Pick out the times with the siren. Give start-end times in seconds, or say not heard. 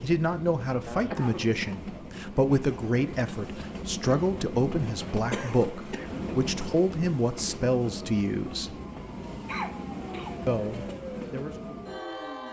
8.0-12.4.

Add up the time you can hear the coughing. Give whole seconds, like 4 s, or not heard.
3 s.